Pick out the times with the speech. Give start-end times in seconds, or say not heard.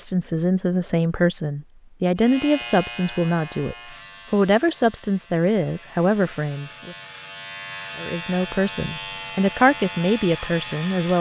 0.0-7.0, 8.0-11.1.